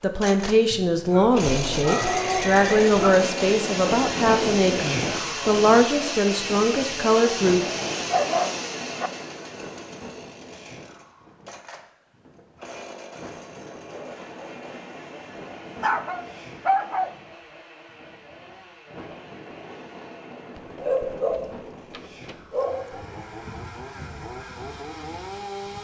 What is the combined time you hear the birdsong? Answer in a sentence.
You can't hear the birdsong here.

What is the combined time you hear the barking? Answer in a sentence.
You can hear the barking for 7 seconds altogether.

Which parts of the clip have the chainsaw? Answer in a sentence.
You can hear the chainsaw from 0.0 to 25.7 s.